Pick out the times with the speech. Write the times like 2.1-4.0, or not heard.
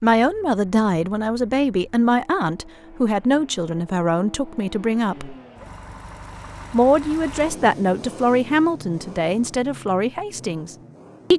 0.0-5.3, 6.7-11.3.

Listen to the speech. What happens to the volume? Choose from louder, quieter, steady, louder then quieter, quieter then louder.
steady.